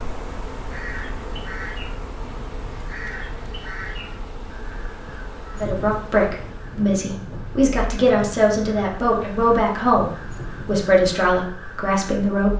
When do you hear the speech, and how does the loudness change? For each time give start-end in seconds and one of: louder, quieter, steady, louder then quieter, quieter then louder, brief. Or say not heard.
5.5-12.5 steady.